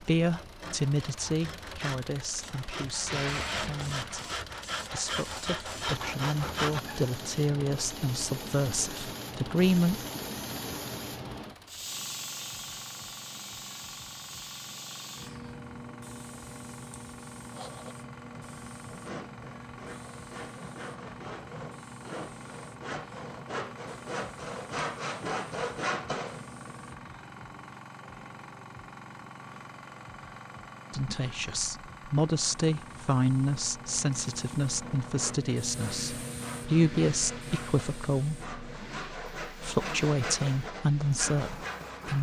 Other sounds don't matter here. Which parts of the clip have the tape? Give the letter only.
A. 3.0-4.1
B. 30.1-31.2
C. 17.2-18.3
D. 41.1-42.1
A.